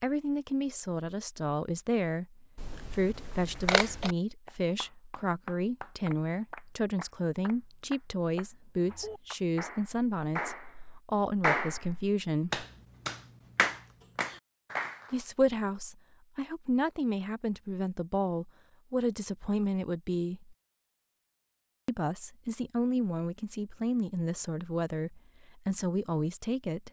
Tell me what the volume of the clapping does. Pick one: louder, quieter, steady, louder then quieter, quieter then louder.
louder.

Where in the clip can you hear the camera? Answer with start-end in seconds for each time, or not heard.
2.5-4.2.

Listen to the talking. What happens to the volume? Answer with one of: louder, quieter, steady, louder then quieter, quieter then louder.
steady.